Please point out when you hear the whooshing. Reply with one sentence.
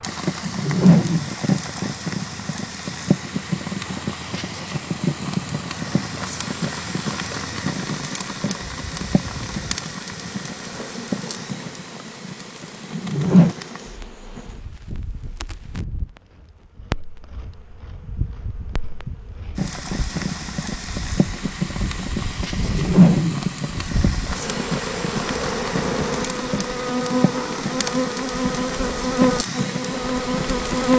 You can hear the whooshing from 0.5 to 1.3 s, from 12.9 to 13.6 s and from 22.6 to 23.4 s.